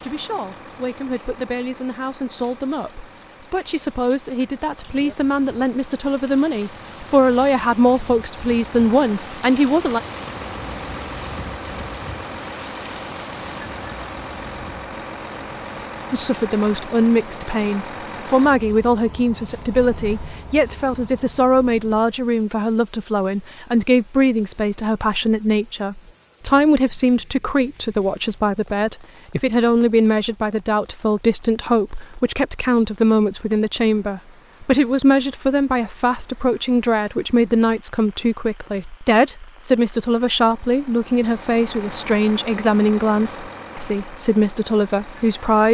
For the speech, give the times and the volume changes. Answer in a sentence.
The speech can be heard from 0.0 to 10.0 s, getting louder; and from 16.1 to 45.6 s, at a steady volume.